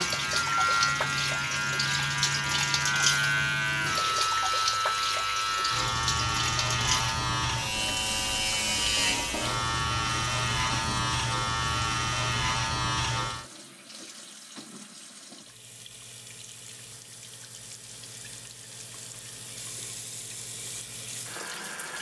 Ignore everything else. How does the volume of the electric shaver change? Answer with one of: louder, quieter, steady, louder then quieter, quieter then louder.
steady.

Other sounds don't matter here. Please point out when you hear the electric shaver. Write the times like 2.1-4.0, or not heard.
0.0-13.4.